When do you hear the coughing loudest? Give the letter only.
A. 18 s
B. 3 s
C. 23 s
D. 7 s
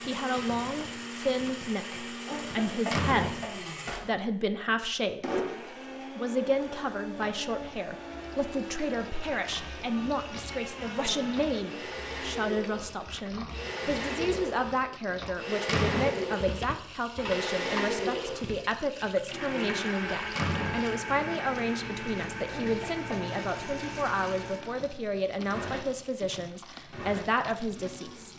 B.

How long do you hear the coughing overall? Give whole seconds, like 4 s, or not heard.
2 s.